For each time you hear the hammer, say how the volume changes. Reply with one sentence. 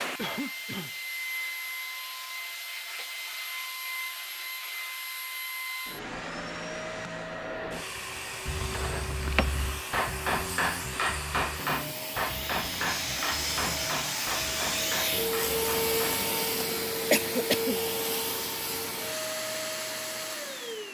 You can hear the hammer from 9.2 to 16.2 s, getting quieter.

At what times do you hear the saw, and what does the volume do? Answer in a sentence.
The saw can't be heard in this clip.